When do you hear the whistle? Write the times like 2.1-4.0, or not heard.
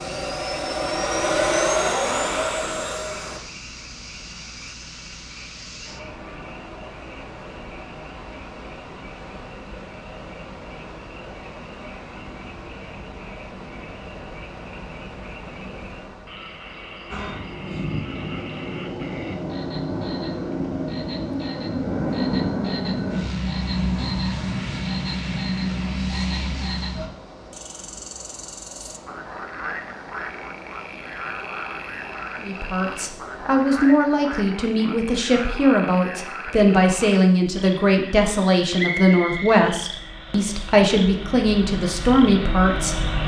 38.8-39.5.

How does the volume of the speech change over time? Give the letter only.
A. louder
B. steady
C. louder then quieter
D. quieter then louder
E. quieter
B.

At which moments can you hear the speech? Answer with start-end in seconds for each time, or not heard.
32.4-43.0.